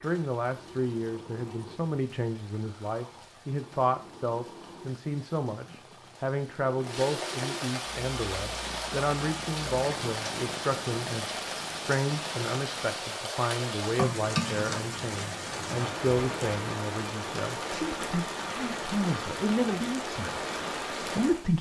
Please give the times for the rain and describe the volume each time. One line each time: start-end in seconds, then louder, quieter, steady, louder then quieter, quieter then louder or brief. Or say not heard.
0.0-21.5 louder.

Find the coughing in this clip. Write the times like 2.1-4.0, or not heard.
13.9-14.8.